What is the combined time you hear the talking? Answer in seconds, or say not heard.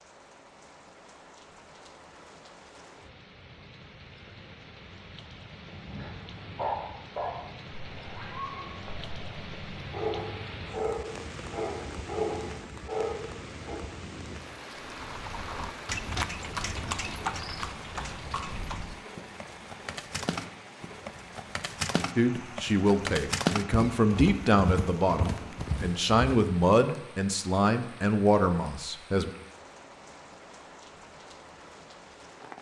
7 s.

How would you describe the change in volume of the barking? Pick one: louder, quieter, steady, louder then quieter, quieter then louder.
quieter then louder.